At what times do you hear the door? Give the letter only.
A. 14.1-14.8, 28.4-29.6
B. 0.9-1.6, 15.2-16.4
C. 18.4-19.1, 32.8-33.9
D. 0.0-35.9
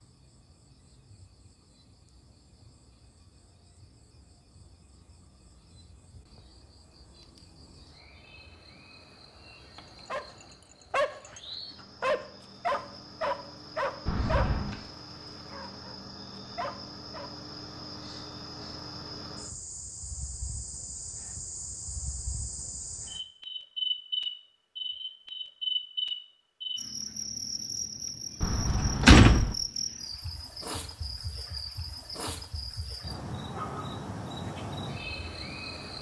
A.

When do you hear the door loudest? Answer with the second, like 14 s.
29 s.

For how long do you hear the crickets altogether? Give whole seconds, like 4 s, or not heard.
36 s.